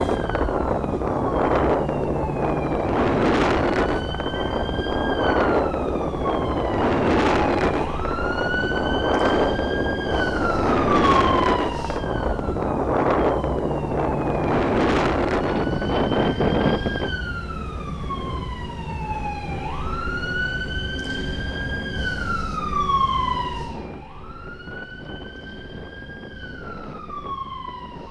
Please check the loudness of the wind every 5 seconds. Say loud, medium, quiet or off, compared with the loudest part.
loud, loud, loud, loud, quiet, quiet.